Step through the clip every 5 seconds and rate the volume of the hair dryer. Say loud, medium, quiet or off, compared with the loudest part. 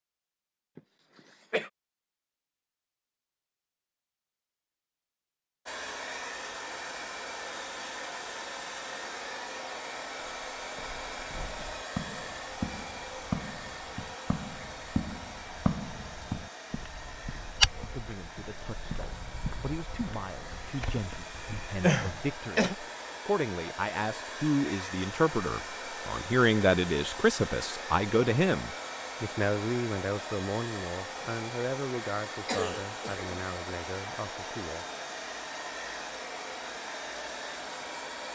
off, loud, loud, medium, loud, loud, loud, loud.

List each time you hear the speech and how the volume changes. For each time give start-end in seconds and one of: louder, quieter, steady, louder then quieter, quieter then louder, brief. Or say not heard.
17.6-34.9 louder then quieter.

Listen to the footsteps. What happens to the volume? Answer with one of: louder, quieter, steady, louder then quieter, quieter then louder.
louder then quieter.